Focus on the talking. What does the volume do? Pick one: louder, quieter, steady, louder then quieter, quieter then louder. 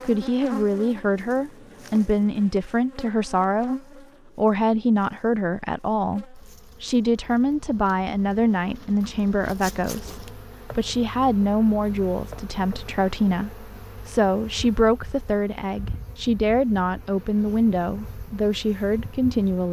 steady.